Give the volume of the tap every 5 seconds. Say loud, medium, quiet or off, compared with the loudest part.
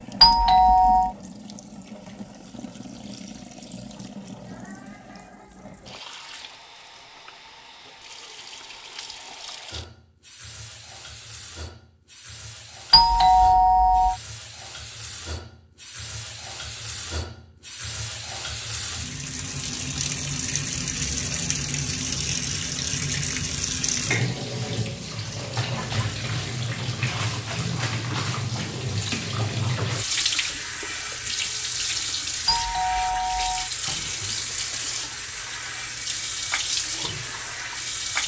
quiet, quiet, quiet, medium, loud, loud, loud, loud.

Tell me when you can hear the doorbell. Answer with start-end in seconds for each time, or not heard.
0.2-1.1, 12.9-14.2, 32.5-33.7.